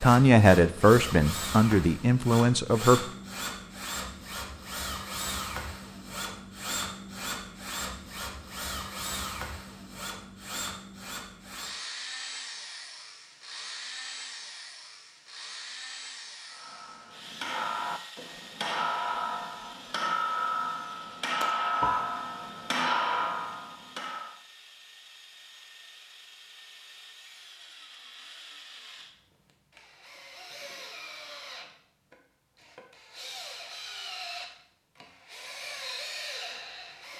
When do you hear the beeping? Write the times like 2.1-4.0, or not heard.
21.4-22.1.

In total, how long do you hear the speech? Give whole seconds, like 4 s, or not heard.
3 s.